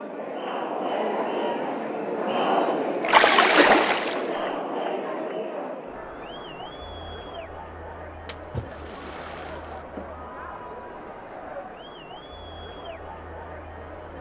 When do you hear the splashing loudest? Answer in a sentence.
The volume of the splashing peaks at 3 seconds.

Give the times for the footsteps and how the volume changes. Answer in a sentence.
The footsteps can't be heard in this clip.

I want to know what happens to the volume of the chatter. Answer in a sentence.
The loudness of the chatter goes down.